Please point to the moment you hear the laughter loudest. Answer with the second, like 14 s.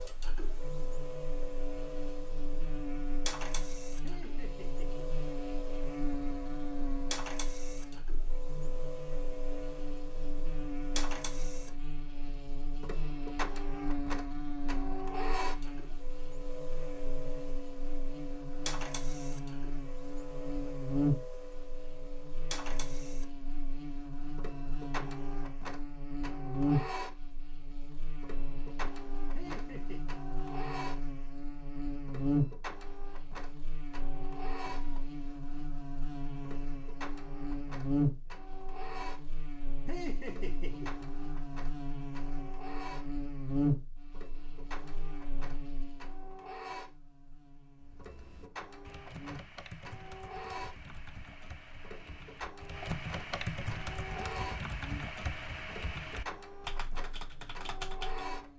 40 s.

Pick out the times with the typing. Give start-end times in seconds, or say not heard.
47.8-58.4.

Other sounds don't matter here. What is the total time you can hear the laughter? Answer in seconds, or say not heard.
3 s.